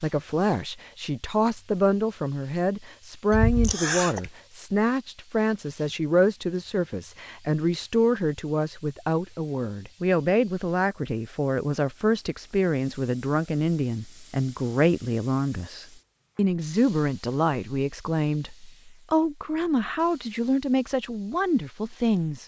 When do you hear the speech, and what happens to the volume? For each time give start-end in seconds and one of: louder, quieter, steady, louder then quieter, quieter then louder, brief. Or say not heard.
0.0-22.4 steady.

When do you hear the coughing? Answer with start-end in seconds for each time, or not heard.
3.3-4.3.